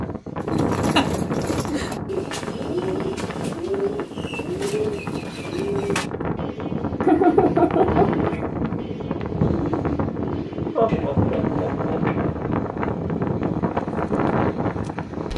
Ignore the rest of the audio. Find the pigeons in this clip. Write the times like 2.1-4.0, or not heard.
0.4-12.5.